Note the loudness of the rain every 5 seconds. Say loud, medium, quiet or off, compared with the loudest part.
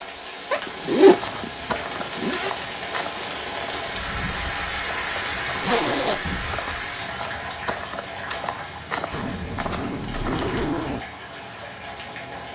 loud, loud, medium.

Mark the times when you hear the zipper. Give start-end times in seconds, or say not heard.
0.5-2.5, 5.6-6.2, 9.1-11.1.